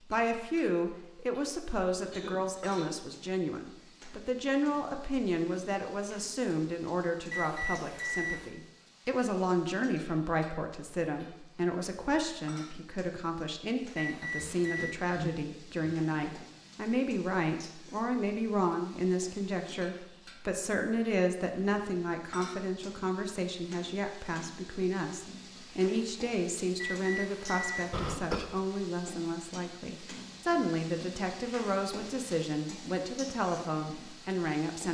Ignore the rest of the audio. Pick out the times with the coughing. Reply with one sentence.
You can hear the coughing from 2.0 to 3.0 s, from 14.3 to 16.3 s and from 27.9 to 28.5 s.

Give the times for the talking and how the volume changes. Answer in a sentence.
You can hear the talking from 0.1 to 34.8 s, at a steady volume.